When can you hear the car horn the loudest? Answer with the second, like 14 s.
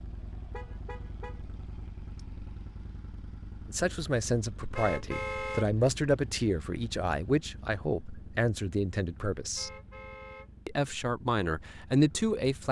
5 s.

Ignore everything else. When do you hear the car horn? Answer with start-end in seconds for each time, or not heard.
0.1-1.4, 4.7-5.7, 9.6-10.5.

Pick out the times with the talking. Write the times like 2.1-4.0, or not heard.
3.6-9.7, 10.7-12.6.